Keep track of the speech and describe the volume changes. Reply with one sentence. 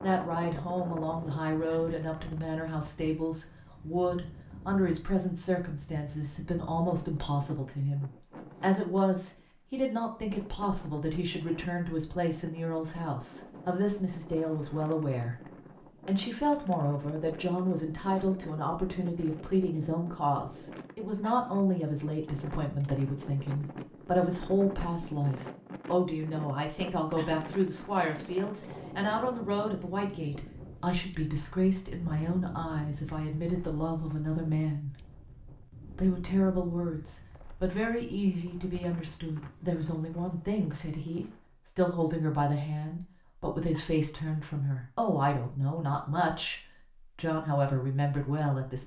The loudness of the speech stays about the same.